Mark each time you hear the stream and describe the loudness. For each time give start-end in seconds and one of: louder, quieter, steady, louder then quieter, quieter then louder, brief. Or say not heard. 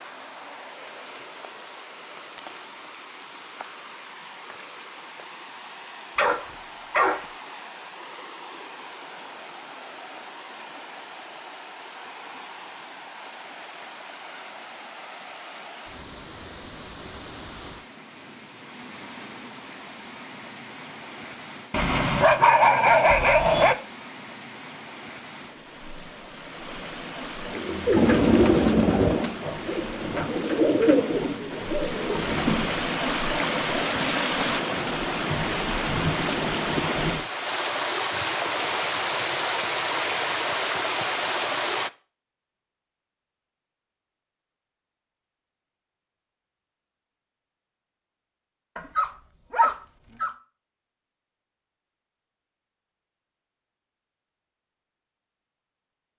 0.0-41.9 louder.